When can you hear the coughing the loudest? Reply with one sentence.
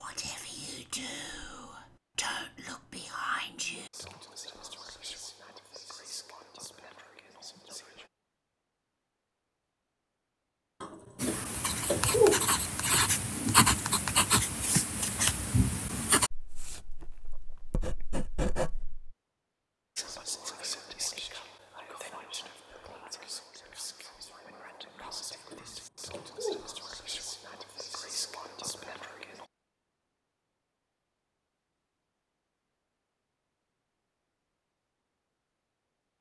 The loudest moment of the coughing is at 12 seconds.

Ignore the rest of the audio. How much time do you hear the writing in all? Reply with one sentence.
The writing can be heard for 8 seconds in total.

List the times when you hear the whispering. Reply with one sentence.
You can hear the whispering from 0.0 to 8.1 s and from 19.9 to 29.4 s.